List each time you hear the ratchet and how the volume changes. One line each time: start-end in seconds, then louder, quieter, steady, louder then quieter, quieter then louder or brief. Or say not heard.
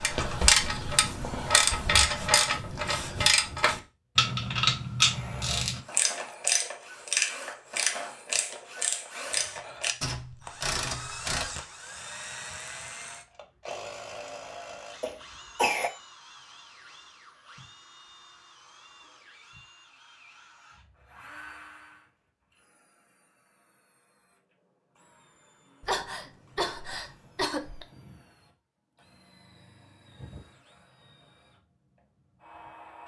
0.0-11.6 quieter.